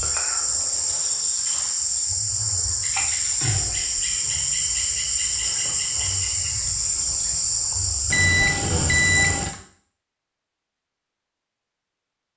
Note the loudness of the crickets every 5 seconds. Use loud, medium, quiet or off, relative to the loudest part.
loud, loud, off.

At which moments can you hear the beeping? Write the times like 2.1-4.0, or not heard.
8.1-9.5.